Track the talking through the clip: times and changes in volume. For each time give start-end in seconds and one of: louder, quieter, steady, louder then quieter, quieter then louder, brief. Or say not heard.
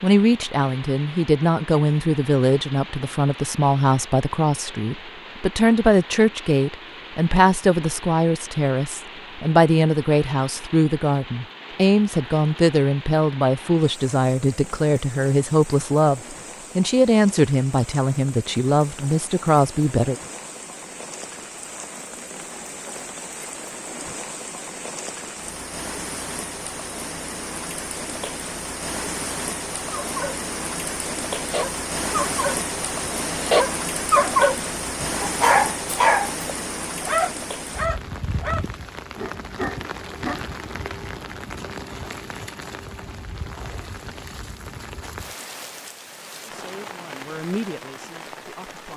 0.0-20.1 steady
46.4-48.9 brief.